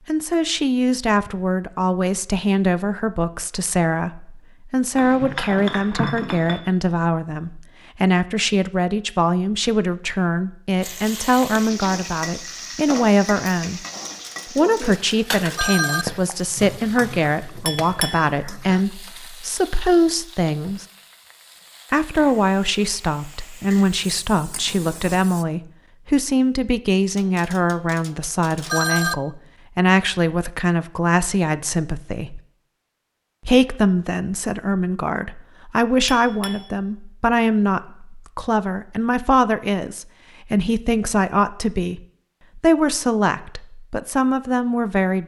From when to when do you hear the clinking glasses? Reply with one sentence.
The clinking glasses can be heard from 5.0 to 6.6 s, from 17.6 to 18.3 s and from 36.0 to 36.7 s.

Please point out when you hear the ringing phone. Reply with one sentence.
The ringing phone can be heard from 14.1 to 16.1 s and from 27.1 to 29.1 s.